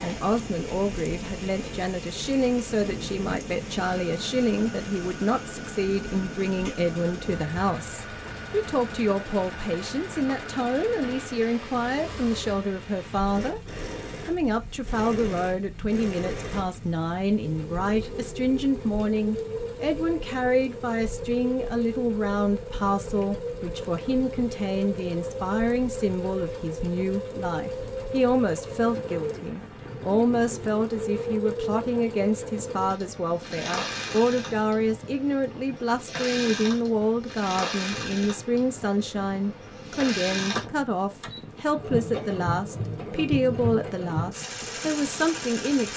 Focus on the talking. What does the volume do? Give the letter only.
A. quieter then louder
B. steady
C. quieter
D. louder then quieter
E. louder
B.